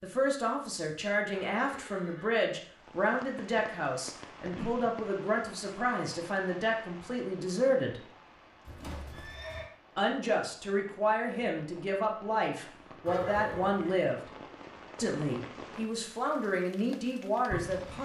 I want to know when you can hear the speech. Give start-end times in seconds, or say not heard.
0.0-8.0, 9.9-14.2, 14.9-18.0.